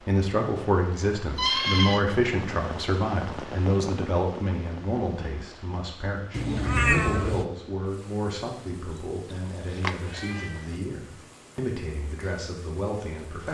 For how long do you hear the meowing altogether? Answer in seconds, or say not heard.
3 s.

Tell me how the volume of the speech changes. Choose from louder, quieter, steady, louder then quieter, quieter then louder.
quieter.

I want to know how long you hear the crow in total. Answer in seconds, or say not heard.
not heard.